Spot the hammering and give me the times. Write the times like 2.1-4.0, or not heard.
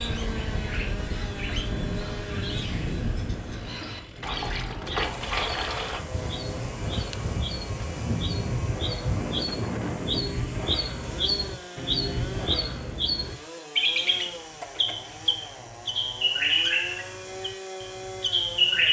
not heard.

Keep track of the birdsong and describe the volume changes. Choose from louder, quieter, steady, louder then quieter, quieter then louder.
louder.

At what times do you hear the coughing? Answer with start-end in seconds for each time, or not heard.
not heard.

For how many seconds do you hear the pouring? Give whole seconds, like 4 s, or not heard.
2 s.